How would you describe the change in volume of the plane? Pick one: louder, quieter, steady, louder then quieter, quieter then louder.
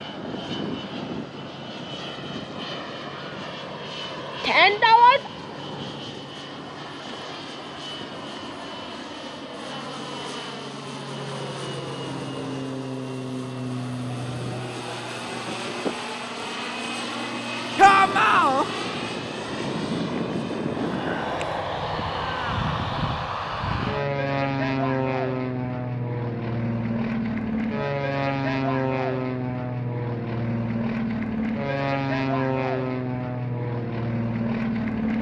louder.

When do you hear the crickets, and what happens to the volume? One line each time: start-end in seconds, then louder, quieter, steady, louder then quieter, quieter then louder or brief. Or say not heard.
not heard.